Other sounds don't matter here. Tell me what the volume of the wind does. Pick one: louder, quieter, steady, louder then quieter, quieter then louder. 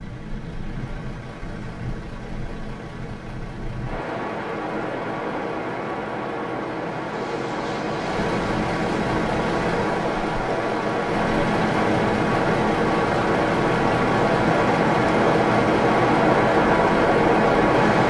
louder.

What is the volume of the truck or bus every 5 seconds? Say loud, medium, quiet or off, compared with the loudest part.
quiet, loud, loud, loud.